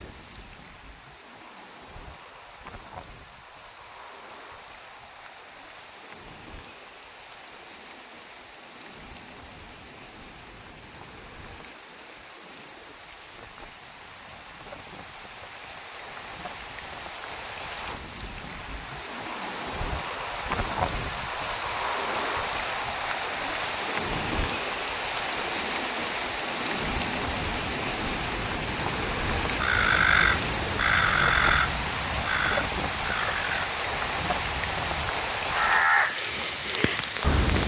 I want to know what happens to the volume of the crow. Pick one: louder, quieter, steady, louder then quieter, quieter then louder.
quieter then louder.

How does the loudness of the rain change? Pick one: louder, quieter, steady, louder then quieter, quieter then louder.
louder.